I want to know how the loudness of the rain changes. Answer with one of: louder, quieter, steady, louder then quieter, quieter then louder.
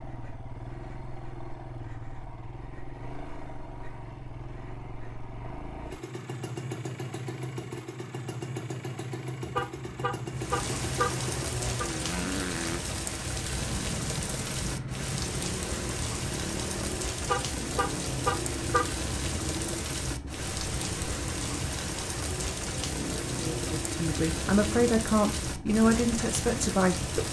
steady.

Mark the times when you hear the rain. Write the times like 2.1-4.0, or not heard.
10.3-27.2.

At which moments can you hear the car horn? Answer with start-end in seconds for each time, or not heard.
9.4-11.9, 17.1-18.9.